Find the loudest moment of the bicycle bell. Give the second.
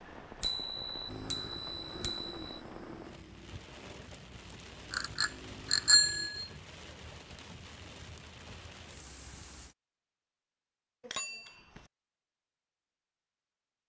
6 s.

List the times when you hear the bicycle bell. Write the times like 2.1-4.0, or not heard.
0.4-2.4, 4.9-6.5, 11.0-11.8.